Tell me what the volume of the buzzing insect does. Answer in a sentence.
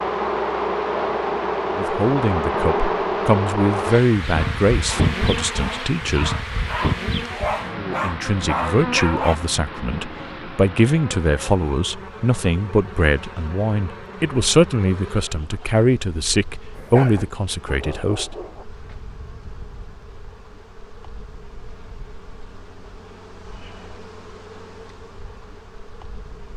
The volume of the buzzing insect goes down.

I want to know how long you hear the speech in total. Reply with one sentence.
You can hear the speech for 15 seconds altogether.